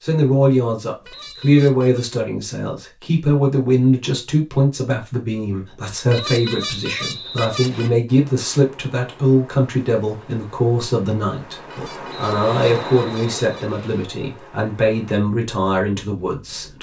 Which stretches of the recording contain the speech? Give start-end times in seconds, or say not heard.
0.0-16.7.